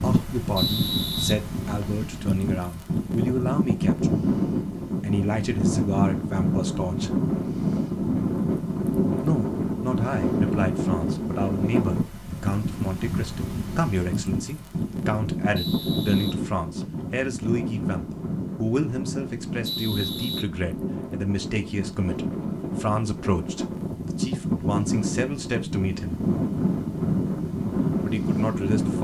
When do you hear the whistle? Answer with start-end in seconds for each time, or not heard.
0.6-2.0, 15.6-17.1, 19.6-20.4.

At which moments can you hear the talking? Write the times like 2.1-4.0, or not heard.
0.0-4.2, 5.0-7.1, 9.2-26.2, 27.9-28.9.